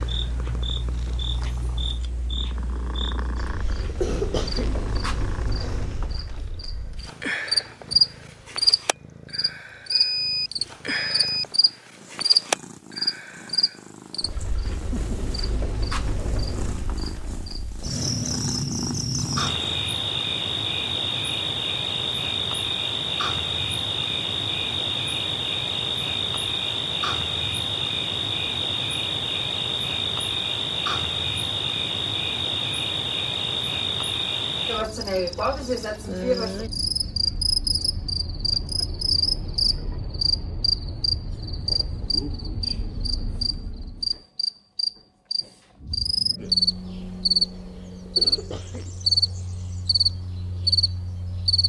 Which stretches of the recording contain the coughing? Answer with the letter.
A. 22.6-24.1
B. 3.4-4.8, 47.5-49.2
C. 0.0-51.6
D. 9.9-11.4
B.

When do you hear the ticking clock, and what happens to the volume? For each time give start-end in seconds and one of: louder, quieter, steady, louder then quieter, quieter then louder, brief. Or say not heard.
not heard.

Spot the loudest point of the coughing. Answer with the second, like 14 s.
4 s.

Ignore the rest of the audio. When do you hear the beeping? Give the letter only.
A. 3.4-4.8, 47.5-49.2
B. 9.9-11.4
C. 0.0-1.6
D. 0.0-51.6
B.